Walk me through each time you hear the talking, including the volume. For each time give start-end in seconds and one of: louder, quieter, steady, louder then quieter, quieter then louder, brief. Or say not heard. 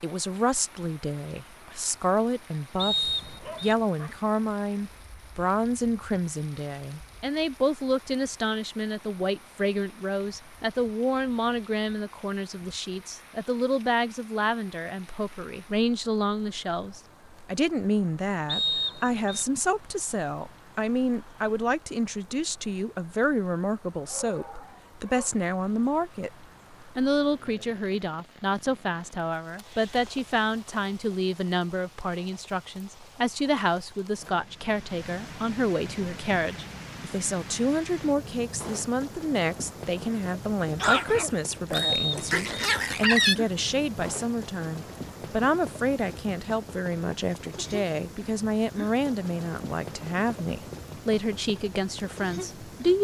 0.0-26.3 steady
26.9-52.9 steady.